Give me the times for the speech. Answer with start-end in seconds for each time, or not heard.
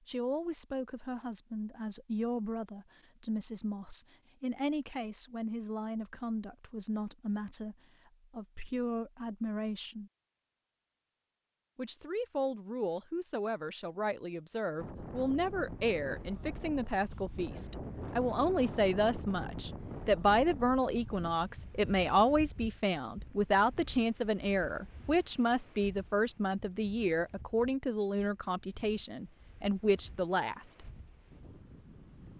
0.1-10.1, 11.8-30.9.